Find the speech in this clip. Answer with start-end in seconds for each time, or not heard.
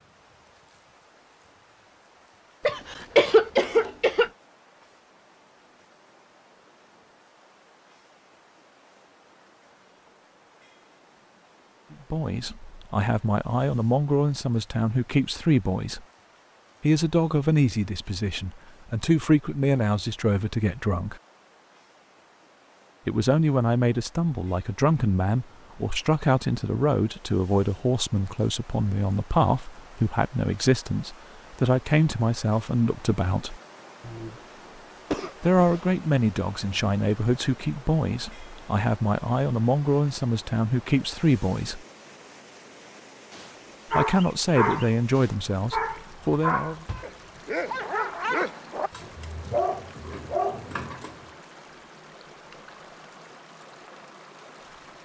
11.9-16.0, 16.8-21.2, 23.1-33.6, 35.4-41.8, 43.9-46.9.